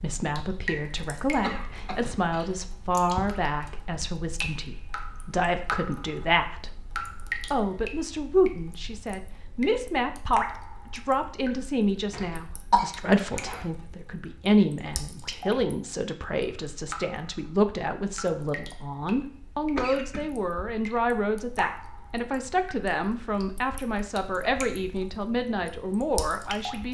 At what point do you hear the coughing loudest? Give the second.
13 s.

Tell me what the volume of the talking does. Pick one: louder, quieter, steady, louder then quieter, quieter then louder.
steady.